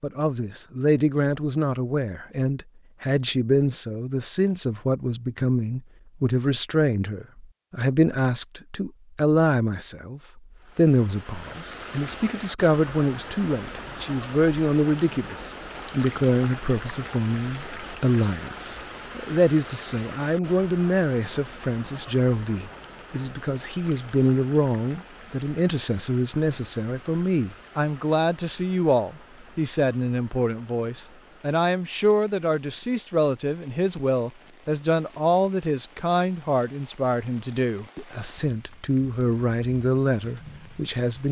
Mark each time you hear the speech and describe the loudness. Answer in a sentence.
The speech can be heard from 0.0 to 41.2 s, at a steady volume.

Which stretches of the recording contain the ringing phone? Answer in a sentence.
You can't hear the ringing phone here.